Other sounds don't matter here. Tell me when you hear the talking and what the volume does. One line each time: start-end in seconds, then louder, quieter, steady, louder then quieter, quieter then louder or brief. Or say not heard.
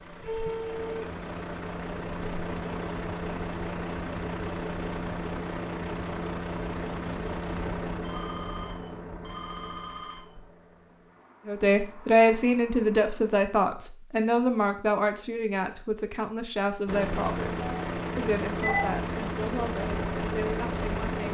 11.4-21.3 quieter.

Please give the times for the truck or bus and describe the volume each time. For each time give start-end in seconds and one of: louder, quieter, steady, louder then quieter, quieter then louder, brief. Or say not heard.
0.0-13.2 quieter
16.9-21.3 steady.